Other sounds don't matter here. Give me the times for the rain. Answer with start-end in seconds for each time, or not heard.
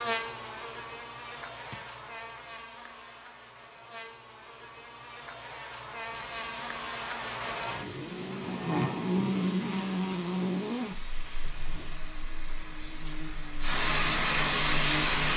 6.1-15.3.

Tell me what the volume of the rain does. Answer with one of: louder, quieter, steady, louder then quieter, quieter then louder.
louder.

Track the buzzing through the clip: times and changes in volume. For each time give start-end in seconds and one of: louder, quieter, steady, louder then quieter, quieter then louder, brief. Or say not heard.
0.0-15.3 louder then quieter.